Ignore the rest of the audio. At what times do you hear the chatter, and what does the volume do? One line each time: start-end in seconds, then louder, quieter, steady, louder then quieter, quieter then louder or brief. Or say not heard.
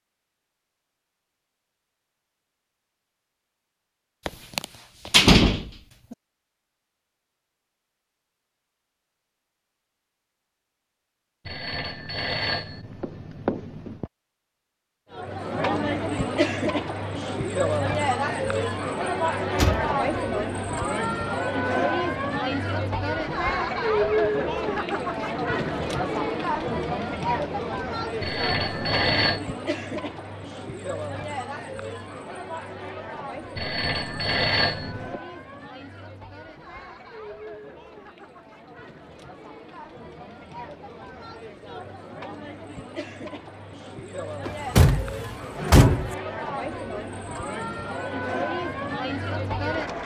15.1-50.0 quieter then louder.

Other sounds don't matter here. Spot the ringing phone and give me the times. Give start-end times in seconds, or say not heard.
11.4-14.1, 28.2-29.4, 33.5-35.2.